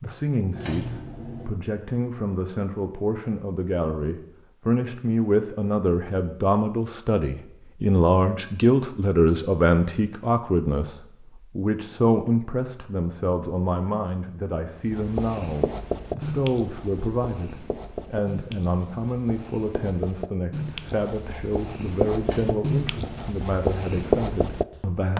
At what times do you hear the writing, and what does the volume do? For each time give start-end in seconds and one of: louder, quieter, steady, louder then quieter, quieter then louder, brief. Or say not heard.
14.8-25.1 quieter then louder.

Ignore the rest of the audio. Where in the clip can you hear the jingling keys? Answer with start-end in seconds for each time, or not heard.
0.5-1.5, 22.2-23.1.